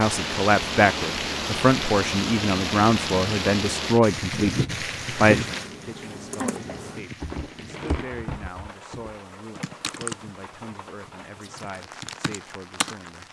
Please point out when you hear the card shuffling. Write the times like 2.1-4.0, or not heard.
6.4-8.1.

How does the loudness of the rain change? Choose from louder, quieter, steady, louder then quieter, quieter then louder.
quieter.